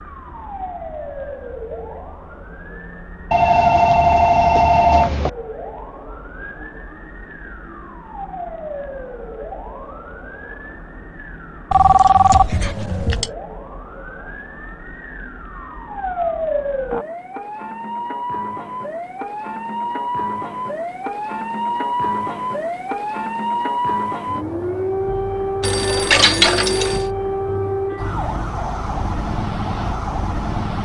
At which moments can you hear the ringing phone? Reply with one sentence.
You can hear the ringing phone from 3.3 to 5.3 s, from 11.7 to 13.3 s and from 25.6 to 27.1 s.